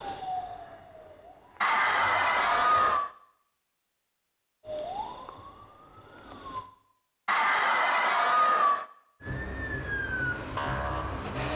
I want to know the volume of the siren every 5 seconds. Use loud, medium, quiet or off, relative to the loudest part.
medium, medium, loud.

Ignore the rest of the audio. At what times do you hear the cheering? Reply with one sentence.
You can hear the cheering from 1.6 to 3.1 s and from 7.2 to 8.8 s.